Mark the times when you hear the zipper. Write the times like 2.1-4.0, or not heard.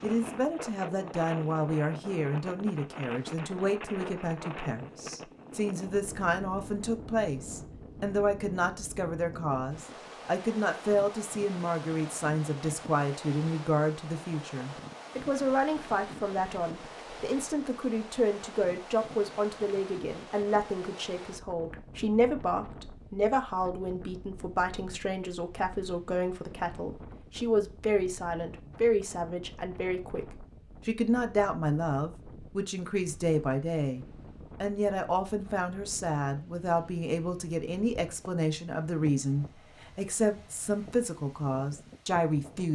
not heard.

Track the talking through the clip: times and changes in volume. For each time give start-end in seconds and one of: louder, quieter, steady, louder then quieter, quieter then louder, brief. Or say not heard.
0.0-42.7 steady.